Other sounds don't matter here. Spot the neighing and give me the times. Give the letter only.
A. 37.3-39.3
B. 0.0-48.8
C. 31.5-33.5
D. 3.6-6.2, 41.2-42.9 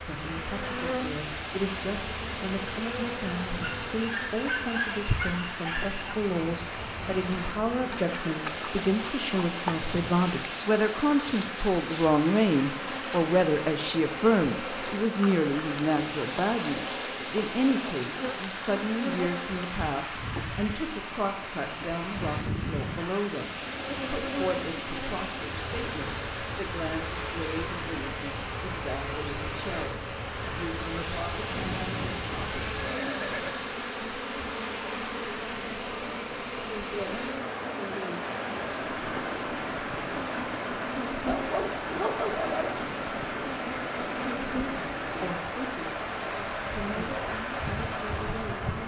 C.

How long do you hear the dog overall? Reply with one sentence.
The dog can be heard for 4 seconds in total.